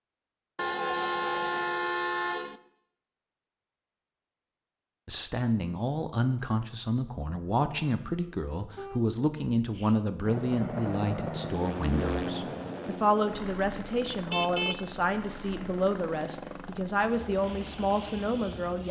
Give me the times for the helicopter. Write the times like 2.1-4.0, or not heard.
10.2-18.8.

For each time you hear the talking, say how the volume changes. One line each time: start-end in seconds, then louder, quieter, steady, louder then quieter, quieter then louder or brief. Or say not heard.
5.0-18.8 steady.